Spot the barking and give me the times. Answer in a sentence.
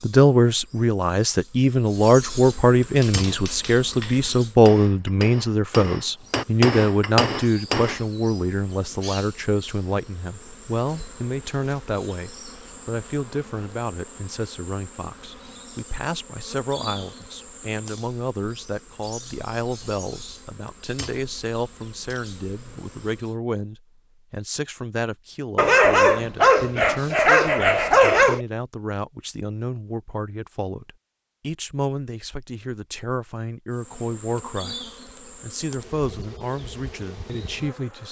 You can hear the barking from 25.6 to 28.4 s.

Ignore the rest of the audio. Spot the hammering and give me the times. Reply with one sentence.
The hammering can be heard from 3.0 to 8.1 s.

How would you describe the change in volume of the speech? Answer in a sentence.
The volume of the speech goes down.